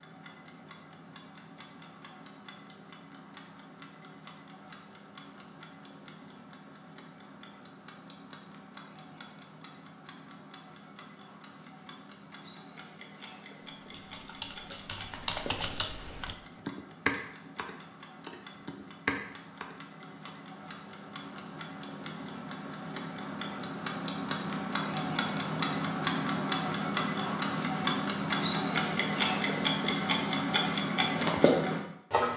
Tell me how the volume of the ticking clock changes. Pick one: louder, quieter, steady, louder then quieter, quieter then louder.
louder.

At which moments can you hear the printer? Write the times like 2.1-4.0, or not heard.
not heard.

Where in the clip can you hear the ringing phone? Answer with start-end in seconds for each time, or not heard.
not heard.